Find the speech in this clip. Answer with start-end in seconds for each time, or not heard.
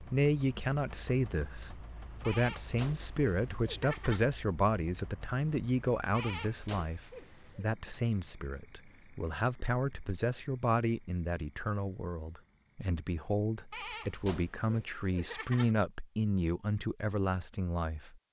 0.0-18.1.